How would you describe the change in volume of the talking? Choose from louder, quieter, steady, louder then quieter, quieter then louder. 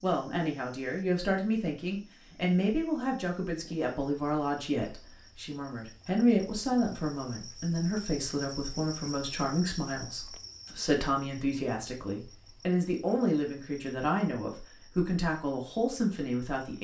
steady.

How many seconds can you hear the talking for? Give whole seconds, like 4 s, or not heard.
17 s.